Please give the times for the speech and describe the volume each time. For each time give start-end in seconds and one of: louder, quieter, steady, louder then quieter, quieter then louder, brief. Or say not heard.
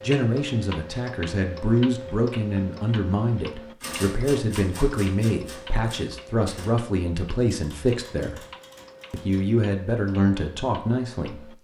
0.0-8.4 steady
9.1-11.6 brief.